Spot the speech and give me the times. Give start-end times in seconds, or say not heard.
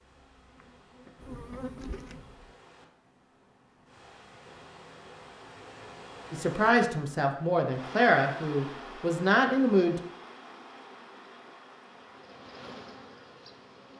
6.3-10.0.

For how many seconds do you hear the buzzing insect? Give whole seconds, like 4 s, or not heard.
5 s.